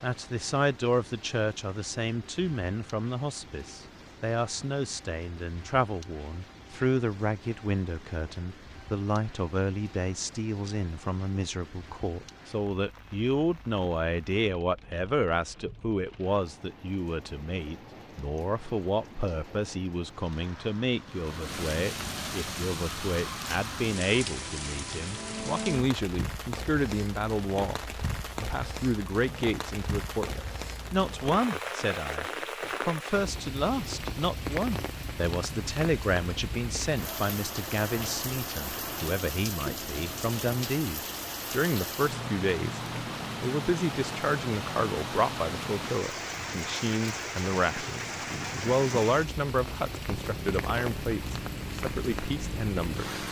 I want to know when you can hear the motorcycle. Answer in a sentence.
The motorcycle can be heard from 50.1 to 53.2 s.